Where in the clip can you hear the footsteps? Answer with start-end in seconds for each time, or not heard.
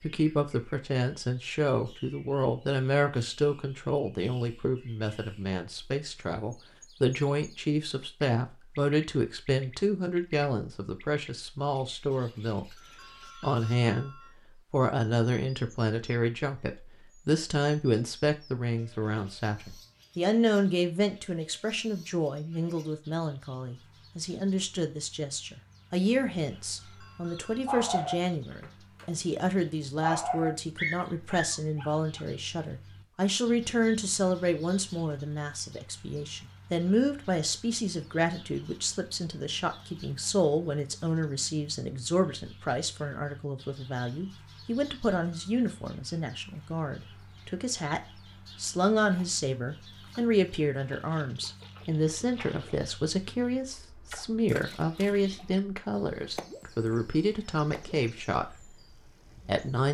not heard.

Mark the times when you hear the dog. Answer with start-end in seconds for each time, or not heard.
27.6-29.2, 30.0-32.2.